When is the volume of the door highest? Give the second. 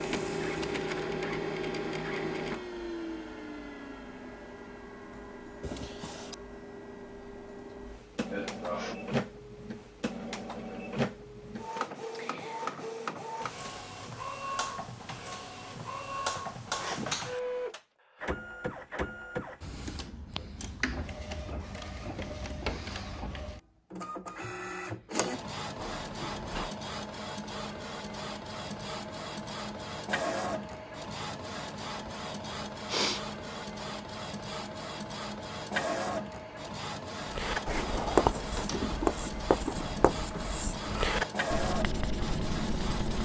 39 s.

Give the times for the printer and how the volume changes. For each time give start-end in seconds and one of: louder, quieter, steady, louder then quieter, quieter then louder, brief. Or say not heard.
0.0-43.2 steady.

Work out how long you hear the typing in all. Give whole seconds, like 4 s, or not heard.
not heard.